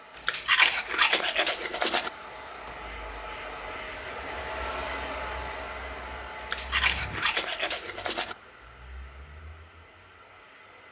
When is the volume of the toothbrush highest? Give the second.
1 s.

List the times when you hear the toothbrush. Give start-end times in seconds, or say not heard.
0.1-2.1, 6.4-8.3.